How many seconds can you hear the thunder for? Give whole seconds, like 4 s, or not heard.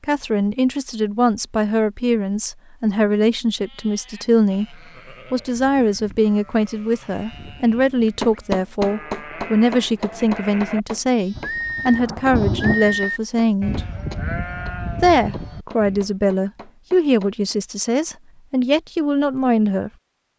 2 s.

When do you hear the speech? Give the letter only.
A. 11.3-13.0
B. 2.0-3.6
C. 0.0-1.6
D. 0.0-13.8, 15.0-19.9
D.